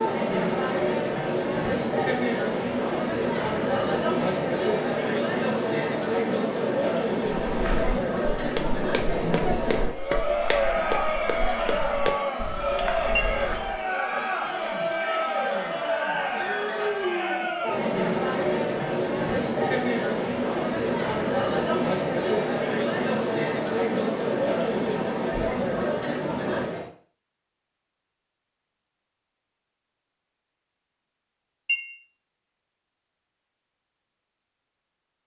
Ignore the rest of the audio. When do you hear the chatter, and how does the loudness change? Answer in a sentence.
You can hear the chatter from 0.0 to 26.9 s, at a steady volume.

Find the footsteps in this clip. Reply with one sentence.
You can hear the footsteps from 7.5 to 13.8 s.